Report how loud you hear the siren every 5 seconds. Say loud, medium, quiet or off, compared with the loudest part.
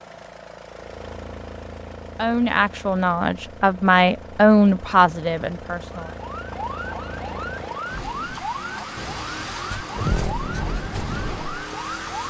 off, loud, loud.